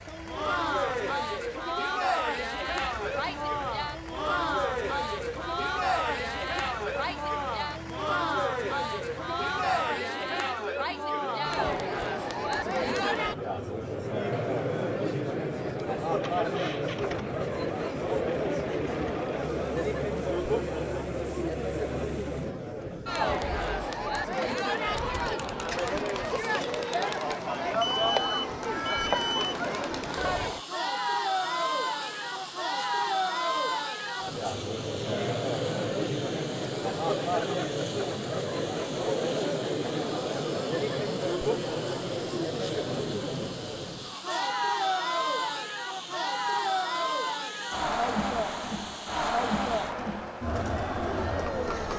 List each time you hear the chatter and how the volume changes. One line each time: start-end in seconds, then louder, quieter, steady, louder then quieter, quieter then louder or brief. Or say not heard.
0.1-51.9 steady.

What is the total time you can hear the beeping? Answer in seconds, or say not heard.
2 s.